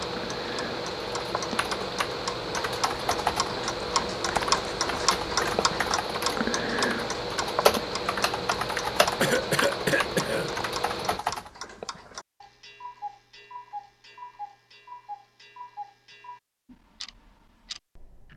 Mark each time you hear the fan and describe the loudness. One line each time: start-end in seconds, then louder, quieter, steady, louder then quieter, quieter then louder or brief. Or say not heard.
0.0-11.2 steady.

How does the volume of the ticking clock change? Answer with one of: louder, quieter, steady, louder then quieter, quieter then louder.
louder then quieter.